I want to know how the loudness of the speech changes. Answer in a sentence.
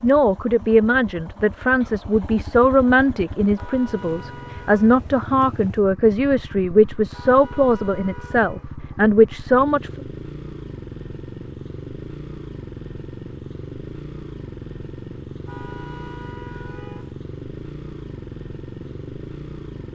The volume of the speech stays about the same.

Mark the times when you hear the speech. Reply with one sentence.
You can hear the speech from 0.0 to 9.9 s.